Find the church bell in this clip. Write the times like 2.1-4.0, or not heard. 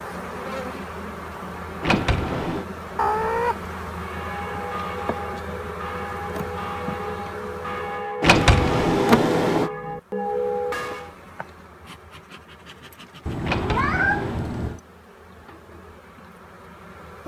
4.0-11.1.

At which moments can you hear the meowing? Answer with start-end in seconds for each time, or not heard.
3.0-3.5, 13.2-14.8.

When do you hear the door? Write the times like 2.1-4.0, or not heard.
1.8-2.6, 8.2-9.7, 13.4-14.4.